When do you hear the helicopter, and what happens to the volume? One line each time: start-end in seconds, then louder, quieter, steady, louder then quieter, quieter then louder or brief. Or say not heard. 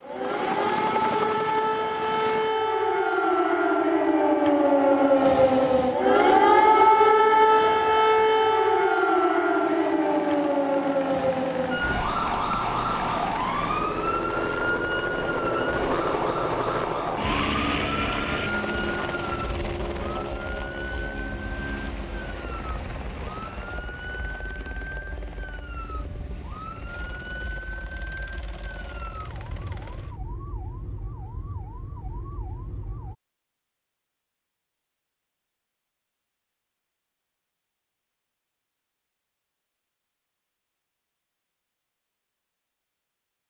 0.0-2.5 brief
9.4-30.2 louder then quieter.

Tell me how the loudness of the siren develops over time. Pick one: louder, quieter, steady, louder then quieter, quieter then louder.
quieter.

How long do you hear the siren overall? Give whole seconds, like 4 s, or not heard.
33 s.